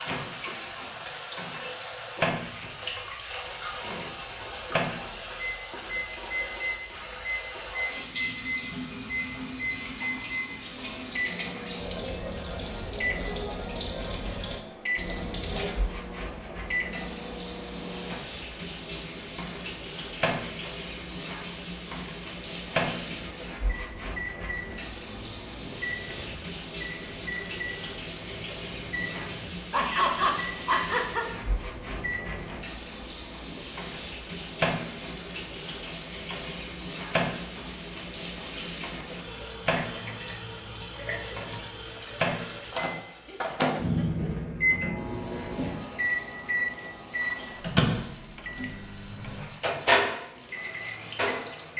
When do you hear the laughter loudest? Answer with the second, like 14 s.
30 s.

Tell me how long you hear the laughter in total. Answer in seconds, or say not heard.
3 s.